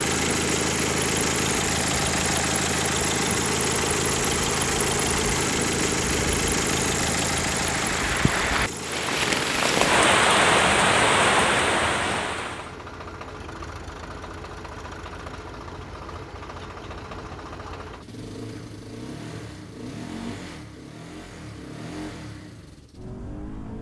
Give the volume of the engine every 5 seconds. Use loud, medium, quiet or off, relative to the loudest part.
loud, loud, quiet, quiet, quiet.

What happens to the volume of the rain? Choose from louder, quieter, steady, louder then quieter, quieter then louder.
louder.